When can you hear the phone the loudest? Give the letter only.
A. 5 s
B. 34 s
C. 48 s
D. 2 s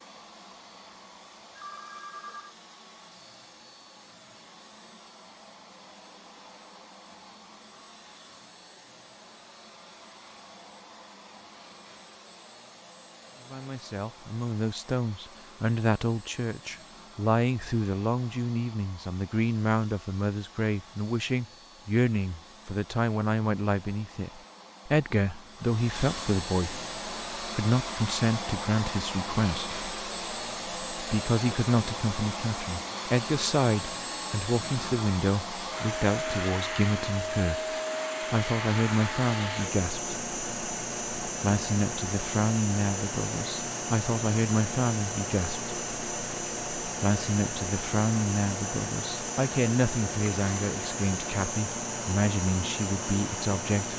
D.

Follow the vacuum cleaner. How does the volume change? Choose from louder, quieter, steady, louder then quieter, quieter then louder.
louder.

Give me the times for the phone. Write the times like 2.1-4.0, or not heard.
0.5-2.5.